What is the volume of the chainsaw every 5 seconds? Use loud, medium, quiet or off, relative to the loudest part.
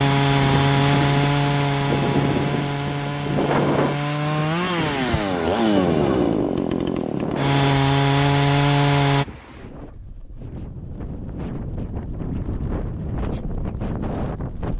loud, loud, off.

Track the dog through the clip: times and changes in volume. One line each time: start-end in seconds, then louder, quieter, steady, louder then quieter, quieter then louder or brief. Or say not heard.
not heard.